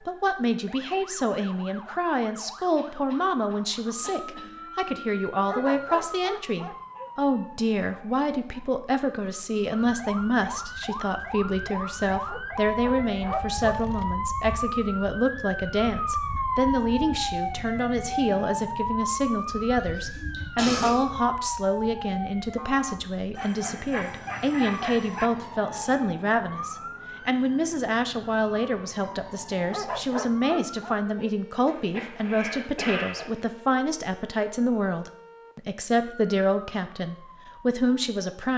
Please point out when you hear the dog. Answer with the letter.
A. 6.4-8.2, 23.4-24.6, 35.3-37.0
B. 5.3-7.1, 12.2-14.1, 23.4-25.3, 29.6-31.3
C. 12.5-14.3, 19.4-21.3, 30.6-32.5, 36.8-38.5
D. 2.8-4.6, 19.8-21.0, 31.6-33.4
B.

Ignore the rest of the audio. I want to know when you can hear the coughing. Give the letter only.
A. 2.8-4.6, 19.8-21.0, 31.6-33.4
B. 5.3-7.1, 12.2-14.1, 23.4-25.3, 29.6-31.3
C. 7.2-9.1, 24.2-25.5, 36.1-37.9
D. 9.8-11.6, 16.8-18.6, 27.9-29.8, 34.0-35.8
A.